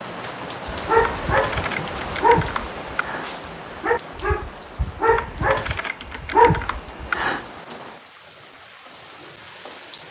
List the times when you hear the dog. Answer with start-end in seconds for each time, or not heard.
0.7-7.5.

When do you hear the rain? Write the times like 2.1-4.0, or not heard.
0.0-10.0.